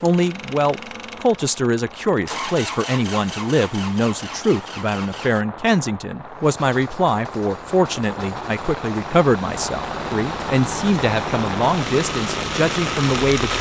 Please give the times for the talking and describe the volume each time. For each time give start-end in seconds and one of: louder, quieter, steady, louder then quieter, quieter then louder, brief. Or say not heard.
0.0-13.5 steady.